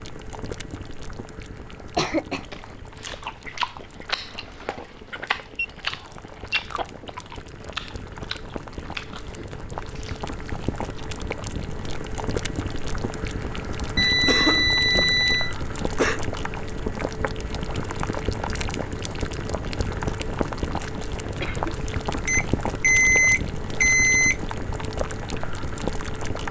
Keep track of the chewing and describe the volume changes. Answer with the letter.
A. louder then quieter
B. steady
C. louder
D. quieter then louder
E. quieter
E.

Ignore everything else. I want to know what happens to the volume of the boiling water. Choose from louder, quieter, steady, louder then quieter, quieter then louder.
louder.